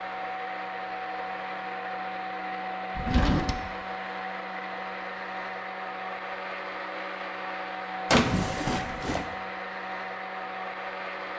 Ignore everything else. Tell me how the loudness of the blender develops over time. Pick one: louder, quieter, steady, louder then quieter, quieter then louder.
steady.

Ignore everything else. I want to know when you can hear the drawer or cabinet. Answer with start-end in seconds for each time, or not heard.
3.0-3.5, 8.1-9.2.